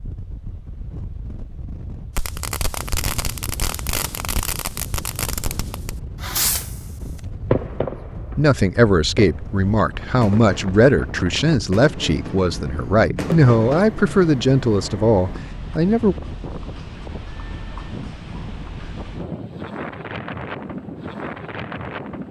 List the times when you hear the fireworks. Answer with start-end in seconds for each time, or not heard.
2.1-13.8.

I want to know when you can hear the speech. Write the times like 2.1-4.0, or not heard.
8.3-16.1.